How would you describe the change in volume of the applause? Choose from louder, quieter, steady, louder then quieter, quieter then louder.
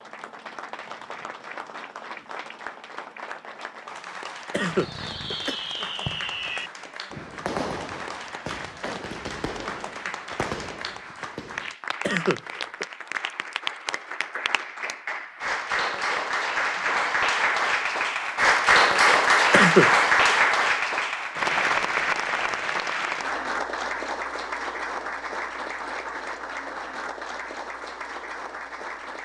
louder then quieter.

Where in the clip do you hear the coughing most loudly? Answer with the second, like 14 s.
20 s.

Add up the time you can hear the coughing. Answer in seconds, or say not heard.
3 s.